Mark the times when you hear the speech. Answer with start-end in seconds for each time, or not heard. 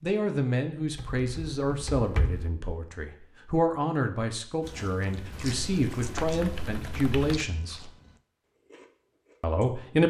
0.0-7.9, 9.4-10.0.